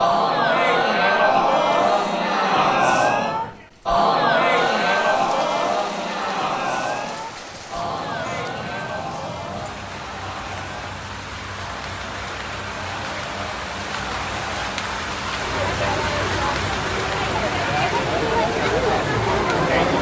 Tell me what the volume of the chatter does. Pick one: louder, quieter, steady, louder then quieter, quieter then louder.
quieter then louder.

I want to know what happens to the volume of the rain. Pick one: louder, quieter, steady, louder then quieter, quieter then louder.
louder.